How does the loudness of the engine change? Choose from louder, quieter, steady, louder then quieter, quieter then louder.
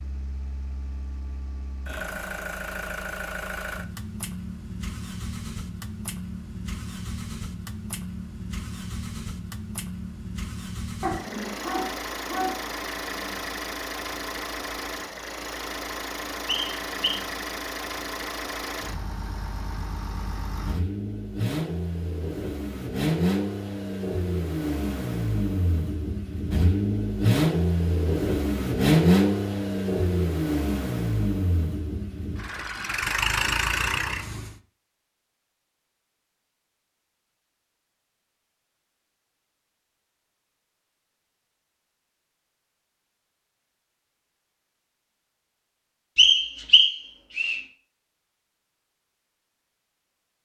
louder.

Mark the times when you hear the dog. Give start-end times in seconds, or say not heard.
11.0-12.7.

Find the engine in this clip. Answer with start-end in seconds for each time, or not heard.
0.0-34.5.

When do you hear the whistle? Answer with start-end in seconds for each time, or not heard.
16.4-17.2, 46.1-47.6.